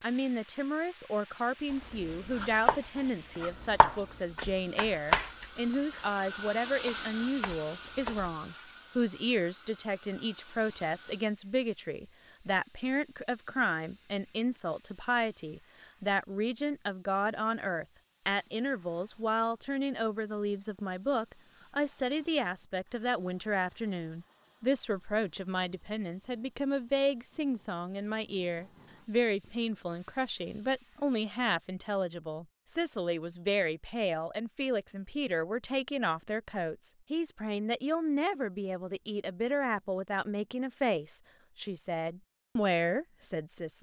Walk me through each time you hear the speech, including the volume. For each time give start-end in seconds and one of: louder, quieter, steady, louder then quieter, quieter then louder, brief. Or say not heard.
0.0-43.7 steady.